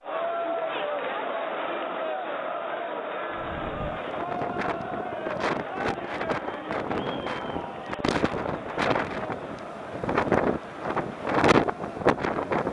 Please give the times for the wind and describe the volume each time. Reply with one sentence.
The wind can be heard from 3.3 to 12.6 s, getting louder.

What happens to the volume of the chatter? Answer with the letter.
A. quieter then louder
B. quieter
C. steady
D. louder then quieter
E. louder
B.